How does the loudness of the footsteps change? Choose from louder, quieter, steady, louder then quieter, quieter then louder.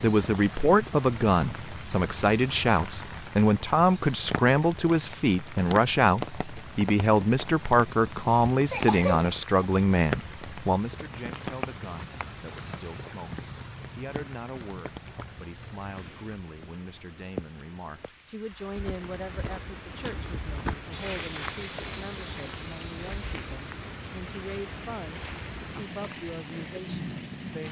louder then quieter.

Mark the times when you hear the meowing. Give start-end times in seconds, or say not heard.
not heard.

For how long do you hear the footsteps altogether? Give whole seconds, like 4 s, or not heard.
8 s.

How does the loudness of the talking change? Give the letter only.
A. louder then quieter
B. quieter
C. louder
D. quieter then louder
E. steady
B.